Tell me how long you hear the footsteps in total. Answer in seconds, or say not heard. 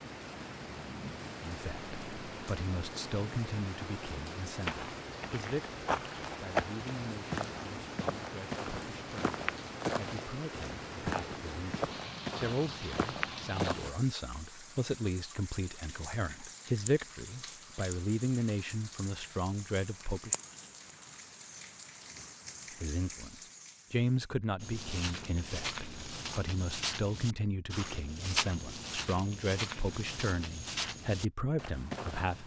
17 s.